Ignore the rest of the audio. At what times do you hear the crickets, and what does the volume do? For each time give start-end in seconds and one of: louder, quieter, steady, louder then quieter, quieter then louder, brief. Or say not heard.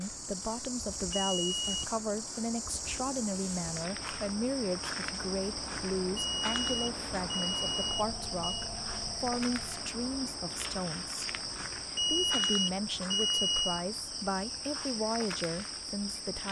0.0-16.4 steady.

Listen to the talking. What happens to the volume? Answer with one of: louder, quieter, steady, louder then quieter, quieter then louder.
steady.